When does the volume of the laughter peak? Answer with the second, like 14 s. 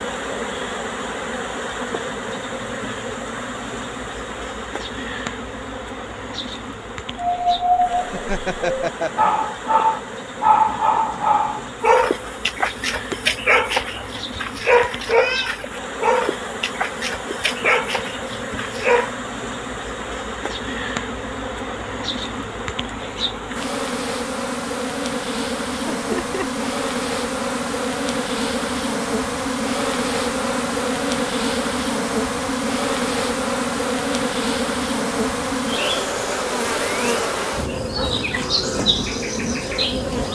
9 s.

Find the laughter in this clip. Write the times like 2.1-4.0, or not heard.
8.1-9.3, 25.9-26.6.